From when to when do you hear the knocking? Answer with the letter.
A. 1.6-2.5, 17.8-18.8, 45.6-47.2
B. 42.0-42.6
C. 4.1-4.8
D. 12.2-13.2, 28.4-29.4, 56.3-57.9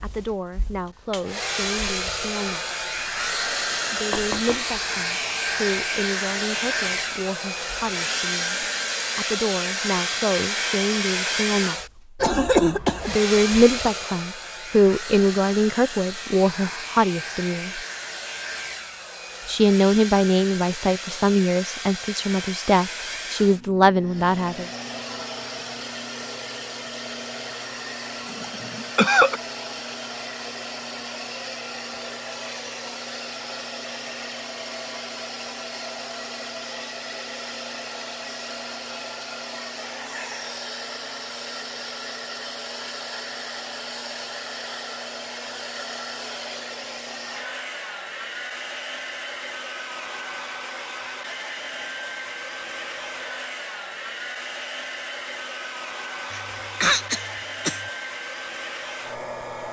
C.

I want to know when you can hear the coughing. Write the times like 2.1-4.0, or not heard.
12.2-13.2, 28.4-29.4, 56.3-57.9.